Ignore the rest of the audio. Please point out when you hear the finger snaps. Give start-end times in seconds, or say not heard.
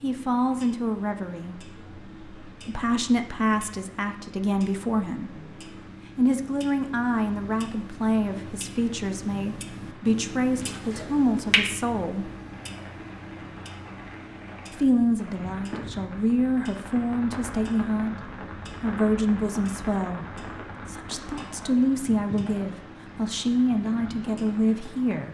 10.6-11.7.